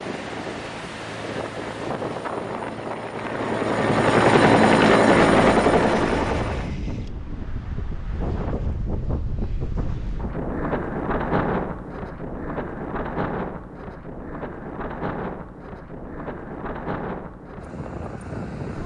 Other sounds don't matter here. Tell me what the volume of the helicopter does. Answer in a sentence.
The volume of the helicopter goes up.